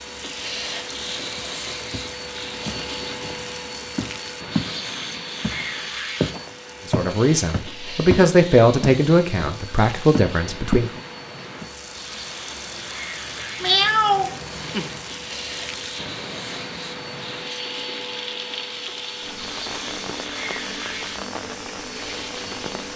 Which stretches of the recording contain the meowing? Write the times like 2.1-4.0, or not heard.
13.6-14.9.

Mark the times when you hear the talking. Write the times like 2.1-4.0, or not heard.
6.8-11.0.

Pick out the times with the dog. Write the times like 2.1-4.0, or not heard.
not heard.